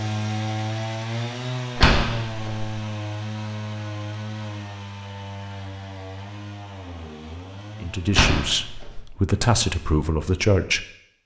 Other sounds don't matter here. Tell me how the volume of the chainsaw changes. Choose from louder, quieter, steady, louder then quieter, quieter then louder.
quieter.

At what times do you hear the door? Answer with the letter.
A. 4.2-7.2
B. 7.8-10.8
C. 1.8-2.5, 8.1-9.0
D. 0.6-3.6
C.